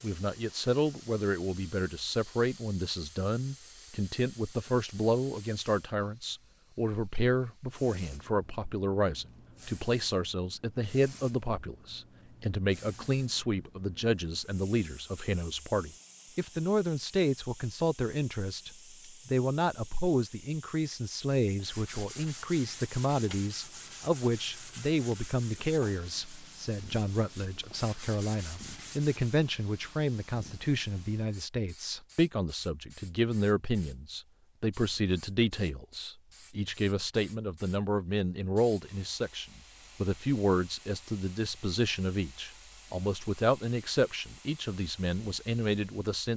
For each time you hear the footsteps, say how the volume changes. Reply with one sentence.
You can't hear the footsteps here.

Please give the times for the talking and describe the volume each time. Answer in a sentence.
The talking can be heard from 0.0 to 46.3 s, at a steady volume.